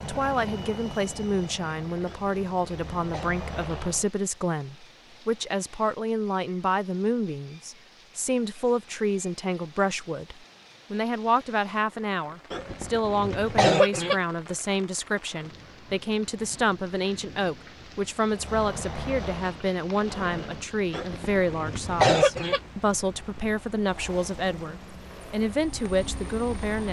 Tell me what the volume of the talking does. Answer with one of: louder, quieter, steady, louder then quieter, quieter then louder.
steady.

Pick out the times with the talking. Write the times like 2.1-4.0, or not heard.
0.0-26.8.